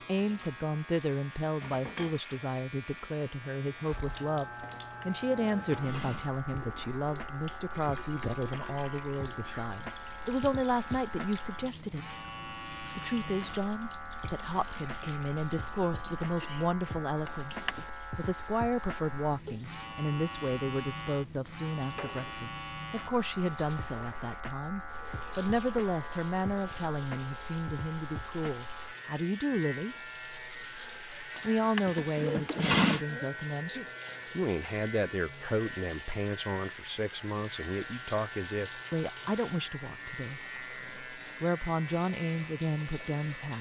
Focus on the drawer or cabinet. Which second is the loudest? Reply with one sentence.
The volume of the drawer or cabinet peaks at 33 seconds.